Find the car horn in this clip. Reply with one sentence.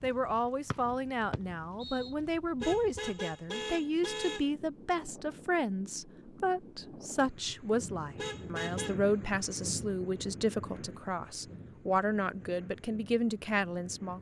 You can hear the car horn from 2.6 to 4.5 s and from 8.2 to 8.9 s.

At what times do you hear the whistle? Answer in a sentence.
You can hear the whistle from 0.7 to 2.1 s.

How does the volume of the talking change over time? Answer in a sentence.
The volume of the talking stays about the same.